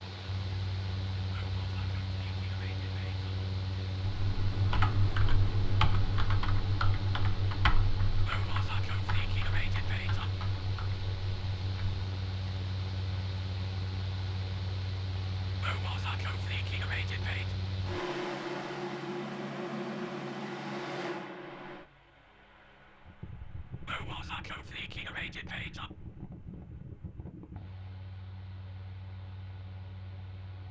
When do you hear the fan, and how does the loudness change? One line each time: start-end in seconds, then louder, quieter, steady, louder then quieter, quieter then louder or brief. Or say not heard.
0.0-30.6 quieter.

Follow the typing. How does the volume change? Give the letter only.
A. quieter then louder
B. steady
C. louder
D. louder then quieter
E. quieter
E.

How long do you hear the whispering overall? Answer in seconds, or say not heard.
8 s.